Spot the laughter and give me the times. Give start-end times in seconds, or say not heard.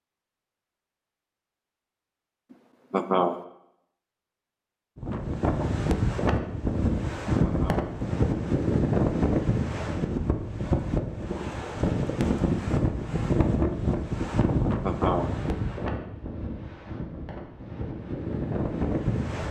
2.9-3.4, 7.4-7.8, 14.8-15.2.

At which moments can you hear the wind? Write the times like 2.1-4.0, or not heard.
5.0-19.4.